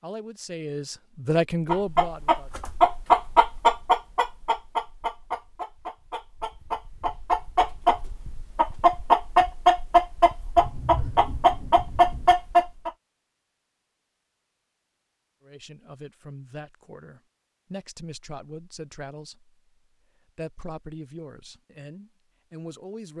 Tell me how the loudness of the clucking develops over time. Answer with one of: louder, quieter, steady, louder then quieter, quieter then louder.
quieter then louder.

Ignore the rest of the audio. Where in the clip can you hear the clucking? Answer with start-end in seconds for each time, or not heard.
1.6-12.9.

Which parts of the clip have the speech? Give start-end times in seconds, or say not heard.
0.0-2.5, 15.4-19.6, 20.4-23.1.